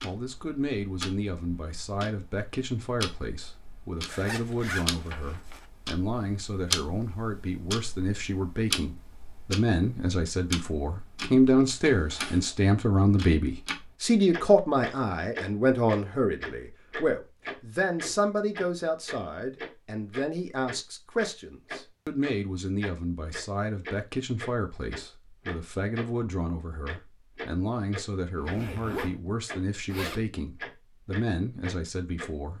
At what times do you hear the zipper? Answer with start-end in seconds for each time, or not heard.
4.0-5.7, 11.8-12.6, 28.4-29.2, 29.9-30.3.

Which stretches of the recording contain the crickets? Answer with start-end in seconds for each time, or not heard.
not heard.